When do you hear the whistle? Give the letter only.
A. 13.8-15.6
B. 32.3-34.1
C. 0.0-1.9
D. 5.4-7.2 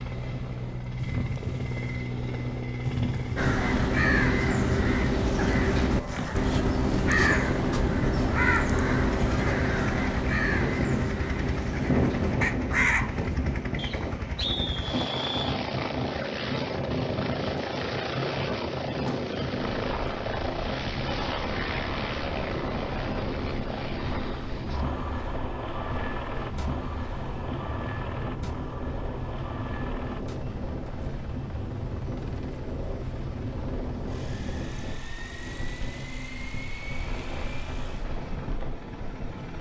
A.